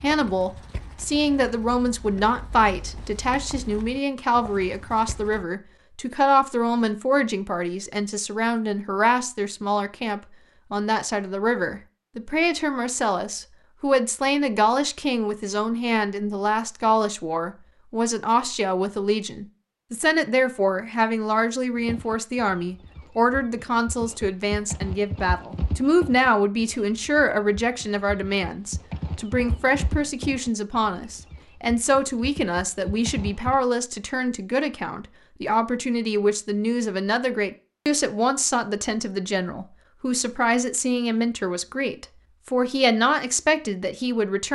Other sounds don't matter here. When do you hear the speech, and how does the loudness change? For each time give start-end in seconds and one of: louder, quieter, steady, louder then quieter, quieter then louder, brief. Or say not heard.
0.0-44.5 steady.